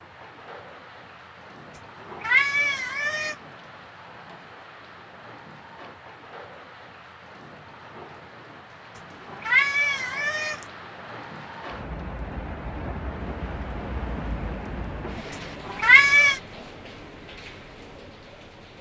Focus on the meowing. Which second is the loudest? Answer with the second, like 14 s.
16 s.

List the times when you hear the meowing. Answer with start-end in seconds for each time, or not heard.
1.8-3.4, 8.9-10.7, 15.3-16.4.